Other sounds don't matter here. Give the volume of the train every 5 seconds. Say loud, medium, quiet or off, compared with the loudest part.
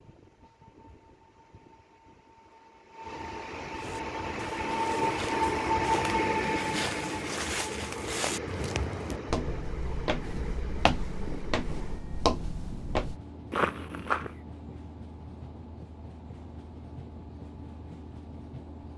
medium, loud, quiet, quiet.